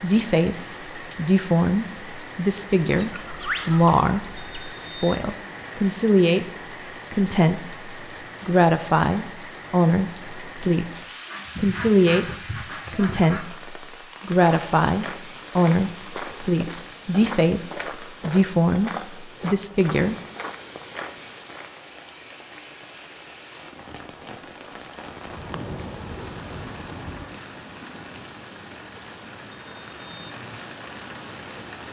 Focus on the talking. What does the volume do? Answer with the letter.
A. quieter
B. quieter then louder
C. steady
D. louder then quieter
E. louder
C.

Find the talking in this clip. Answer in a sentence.
The talking can be heard from 0.0 to 6.5 s, from 7.1 to 12.2 s and from 12.9 to 20.1 s.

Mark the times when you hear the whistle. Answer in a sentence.
You can't hear the whistle here.